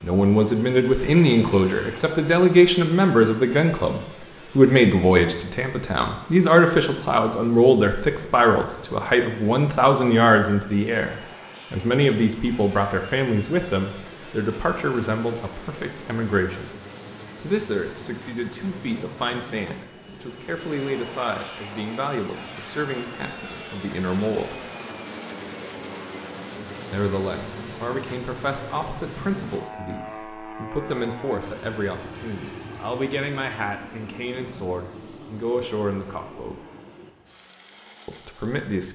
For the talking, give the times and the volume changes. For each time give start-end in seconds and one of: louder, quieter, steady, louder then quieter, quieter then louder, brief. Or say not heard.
0.0-16.7 quieter
17.4-24.6 steady
26.9-36.5 steady
38.0-38.9 brief.